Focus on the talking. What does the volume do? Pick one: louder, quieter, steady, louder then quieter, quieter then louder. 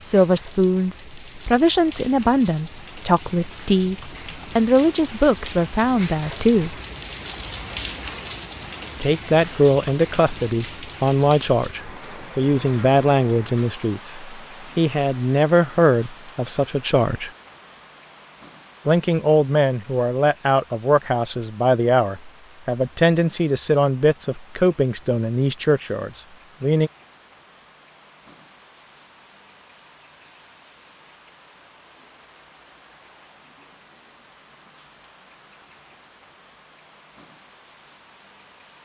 steady.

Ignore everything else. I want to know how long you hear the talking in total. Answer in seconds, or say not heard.
23 s.